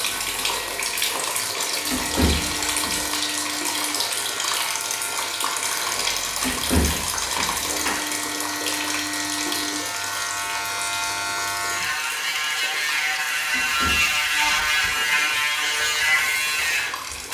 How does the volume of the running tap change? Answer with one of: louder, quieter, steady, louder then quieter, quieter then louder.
quieter.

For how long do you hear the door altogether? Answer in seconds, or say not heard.
4 s.